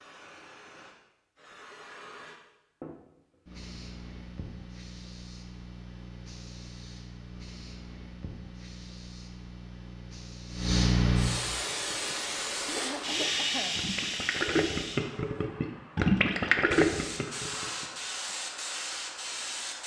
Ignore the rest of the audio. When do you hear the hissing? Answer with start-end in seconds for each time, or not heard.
0.0-19.8.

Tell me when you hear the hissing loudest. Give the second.
11 s.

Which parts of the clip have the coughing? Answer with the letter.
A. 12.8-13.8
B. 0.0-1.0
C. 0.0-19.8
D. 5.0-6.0
A.